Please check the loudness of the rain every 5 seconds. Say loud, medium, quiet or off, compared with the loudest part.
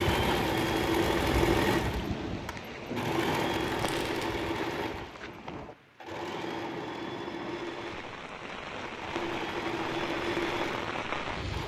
loud, medium, loud.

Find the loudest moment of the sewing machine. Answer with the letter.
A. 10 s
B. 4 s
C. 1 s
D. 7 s
C.